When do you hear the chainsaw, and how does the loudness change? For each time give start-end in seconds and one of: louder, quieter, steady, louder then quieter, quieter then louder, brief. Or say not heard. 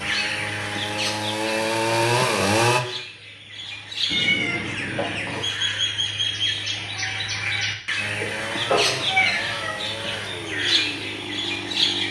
0.0-2.8 brief
8.0-12.0 steady.